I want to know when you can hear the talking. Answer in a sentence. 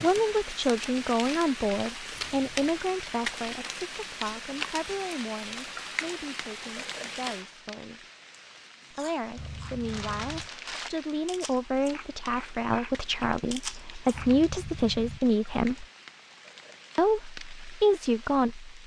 The talking can be heard from 0.0 to 8.1 s, from 8.9 to 15.8 s and from 16.9 to 18.7 s.